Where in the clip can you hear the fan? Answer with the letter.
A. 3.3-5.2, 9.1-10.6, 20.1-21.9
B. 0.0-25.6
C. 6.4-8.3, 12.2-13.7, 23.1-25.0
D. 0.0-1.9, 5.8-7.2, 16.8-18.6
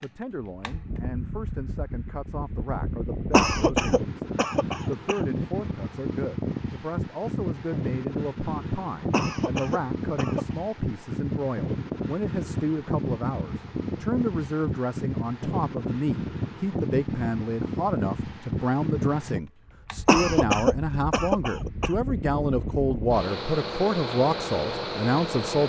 B.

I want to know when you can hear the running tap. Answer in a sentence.
You can't hear the running tap here.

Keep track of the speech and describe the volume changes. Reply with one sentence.
The volume of the speech goes up.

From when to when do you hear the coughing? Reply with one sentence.
You can hear the coughing from 3.3 to 5.2 s, from 9.1 to 10.6 s and from 20.1 to 21.9 s.